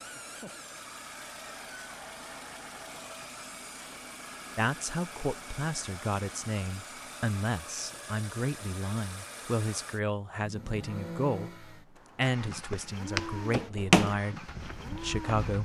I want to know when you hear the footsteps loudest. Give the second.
14 s.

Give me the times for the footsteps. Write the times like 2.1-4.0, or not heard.
12.5-15.6.